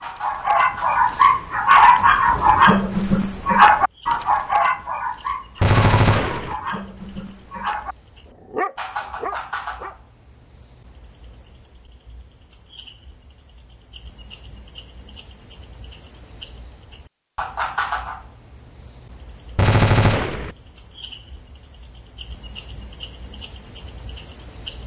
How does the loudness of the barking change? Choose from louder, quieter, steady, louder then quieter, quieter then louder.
quieter.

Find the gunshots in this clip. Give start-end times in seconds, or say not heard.
5.6-6.5, 19.6-20.6.